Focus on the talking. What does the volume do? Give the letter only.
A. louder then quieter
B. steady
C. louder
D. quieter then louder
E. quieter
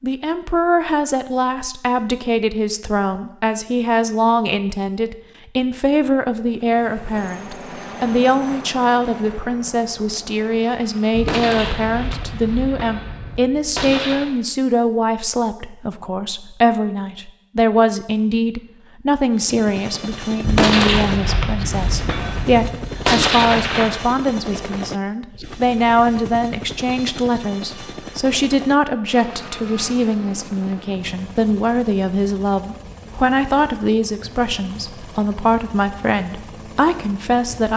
B.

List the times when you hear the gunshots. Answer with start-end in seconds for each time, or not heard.
11.1-14.3, 20.4-24.0.